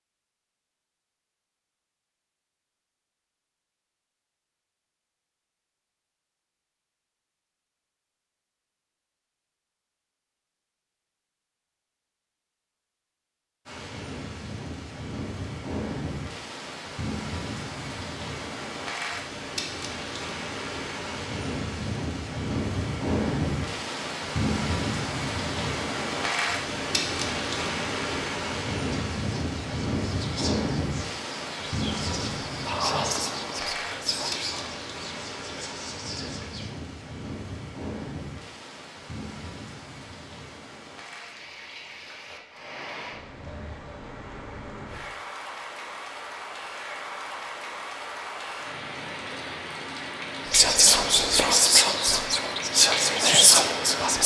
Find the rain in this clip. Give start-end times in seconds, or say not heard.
13.7-54.2.